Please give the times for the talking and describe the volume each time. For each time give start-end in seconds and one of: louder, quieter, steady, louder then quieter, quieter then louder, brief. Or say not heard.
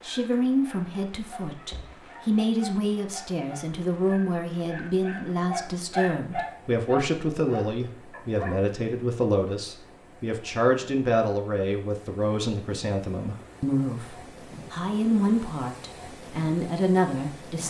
0.1-17.6 steady.